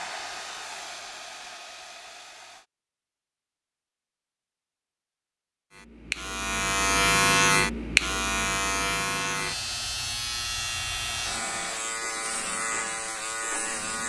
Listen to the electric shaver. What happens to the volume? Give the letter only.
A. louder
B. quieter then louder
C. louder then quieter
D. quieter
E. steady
D.